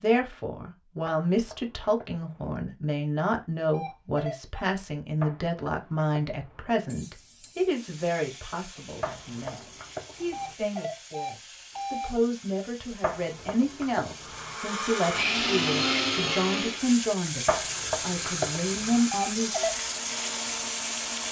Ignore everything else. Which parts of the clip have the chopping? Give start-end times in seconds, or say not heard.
1.1-2.6, 5.2-6.8, 9.0-10.6, 13.0-14.6, 17.4-19.0.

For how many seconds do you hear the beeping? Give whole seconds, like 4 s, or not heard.
4 s.